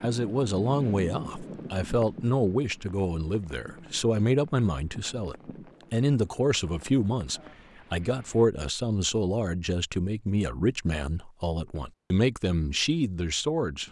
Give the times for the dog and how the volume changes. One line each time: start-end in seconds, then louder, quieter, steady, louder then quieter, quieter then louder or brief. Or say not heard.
not heard.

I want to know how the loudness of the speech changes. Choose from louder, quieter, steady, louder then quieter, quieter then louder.
steady.